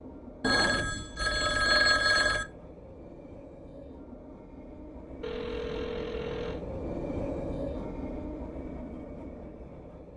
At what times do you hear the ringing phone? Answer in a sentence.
You can hear the ringing phone from 0.4 to 2.5 s and from 5.2 to 6.7 s.